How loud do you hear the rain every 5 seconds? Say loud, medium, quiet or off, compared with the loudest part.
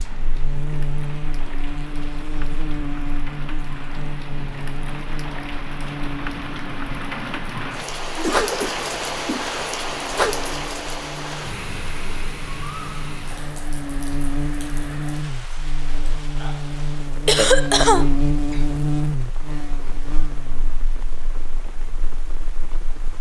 medium, loud, loud, quiet, quiet.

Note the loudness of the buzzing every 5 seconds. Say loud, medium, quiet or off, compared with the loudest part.
medium, medium, medium, loud, quiet.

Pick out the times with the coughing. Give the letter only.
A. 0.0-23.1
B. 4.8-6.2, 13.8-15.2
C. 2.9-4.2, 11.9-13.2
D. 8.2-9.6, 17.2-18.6
D.